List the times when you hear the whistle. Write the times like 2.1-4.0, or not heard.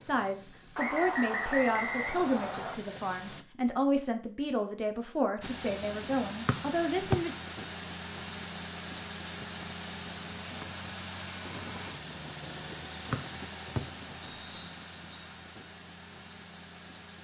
0.8-2.8, 6.5-7.2, 13.1-15.2.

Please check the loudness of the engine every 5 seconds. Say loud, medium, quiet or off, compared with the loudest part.
medium, loud, loud, medium.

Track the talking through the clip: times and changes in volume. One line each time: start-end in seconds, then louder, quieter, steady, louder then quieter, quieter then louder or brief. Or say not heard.
0.0-7.3 steady.